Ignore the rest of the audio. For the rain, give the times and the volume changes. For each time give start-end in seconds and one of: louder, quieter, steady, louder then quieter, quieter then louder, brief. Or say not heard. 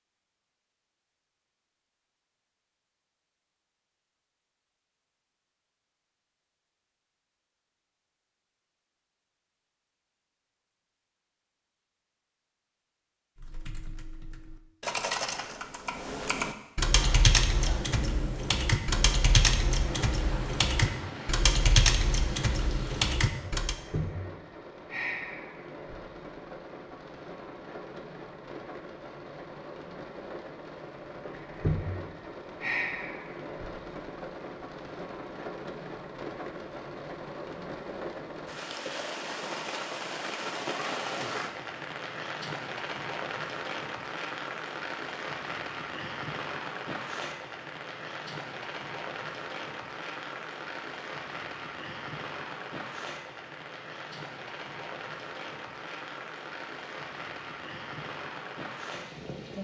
16.9-59.5 steady.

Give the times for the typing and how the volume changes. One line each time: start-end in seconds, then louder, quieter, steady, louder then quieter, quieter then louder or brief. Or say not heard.
13.3-23.8 louder.